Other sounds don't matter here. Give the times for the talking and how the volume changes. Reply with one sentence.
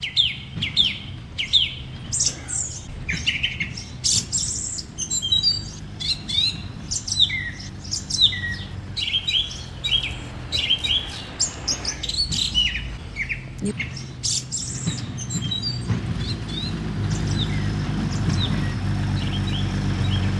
The talking can't be heard in this clip.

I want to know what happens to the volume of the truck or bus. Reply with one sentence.
The volume of the truck or bus goes up.